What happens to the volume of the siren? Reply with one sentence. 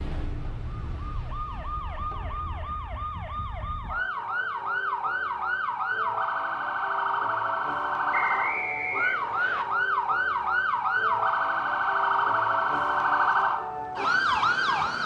The loudness of the siren goes up.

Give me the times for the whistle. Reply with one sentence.
The whistle can be heard from 8.1 to 9.7 s.